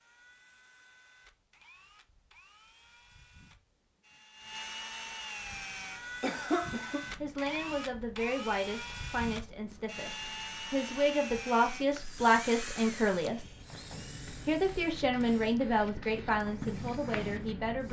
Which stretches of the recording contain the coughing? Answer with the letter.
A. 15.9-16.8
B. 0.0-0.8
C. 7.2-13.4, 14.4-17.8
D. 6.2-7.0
D.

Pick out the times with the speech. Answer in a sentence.
You can hear the speech from 7.2 to 13.4 s and from 14.4 to 17.8 s.